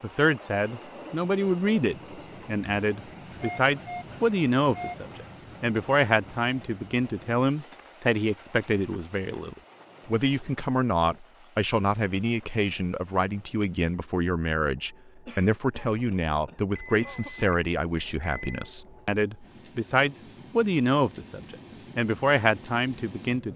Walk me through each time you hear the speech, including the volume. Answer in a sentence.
The speech can be heard from 0.0 to 23.5 s, at a steady volume.